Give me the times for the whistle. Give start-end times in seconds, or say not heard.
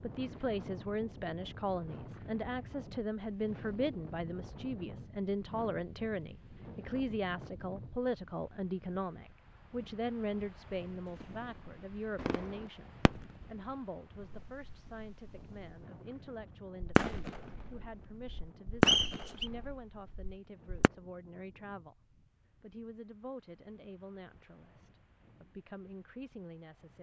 18.9-19.5.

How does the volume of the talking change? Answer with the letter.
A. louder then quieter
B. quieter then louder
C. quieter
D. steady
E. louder
C.